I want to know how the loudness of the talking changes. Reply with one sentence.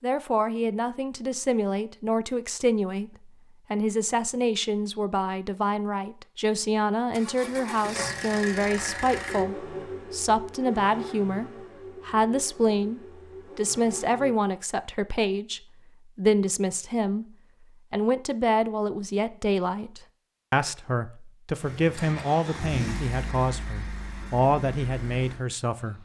The volume of the talking stays about the same.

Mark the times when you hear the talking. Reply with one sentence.
The talking can be heard from 0.0 to 25.9 s.